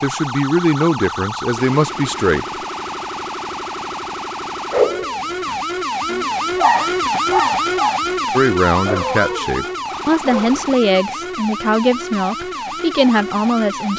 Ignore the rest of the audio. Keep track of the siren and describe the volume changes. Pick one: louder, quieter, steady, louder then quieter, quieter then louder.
louder then quieter.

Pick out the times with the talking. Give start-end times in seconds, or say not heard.
0.0-2.5, 8.3-13.9.